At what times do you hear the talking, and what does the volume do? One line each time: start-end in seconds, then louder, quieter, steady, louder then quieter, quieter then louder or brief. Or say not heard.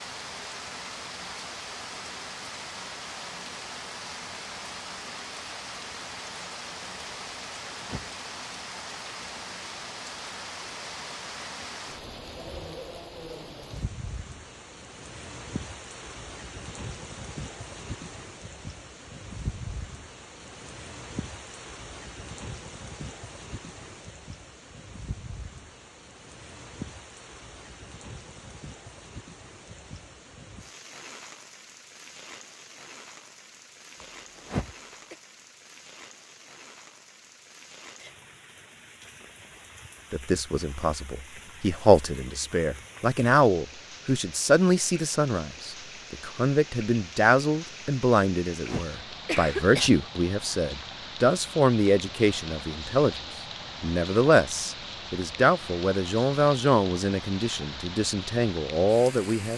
40.1-53.1 steady
53.8-59.5 quieter then louder.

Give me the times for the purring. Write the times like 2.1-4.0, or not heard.
not heard.